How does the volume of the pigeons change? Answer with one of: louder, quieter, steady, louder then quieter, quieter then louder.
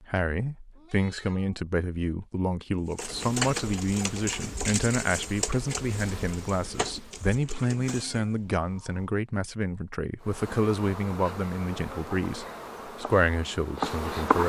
quieter.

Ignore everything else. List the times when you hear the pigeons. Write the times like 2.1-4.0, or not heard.
2.9-8.2.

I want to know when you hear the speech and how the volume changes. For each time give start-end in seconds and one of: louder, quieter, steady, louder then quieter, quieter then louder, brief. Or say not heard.
0.0-14.4 steady.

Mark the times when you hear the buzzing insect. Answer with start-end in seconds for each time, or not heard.
3.0-7.4, 10.2-14.4.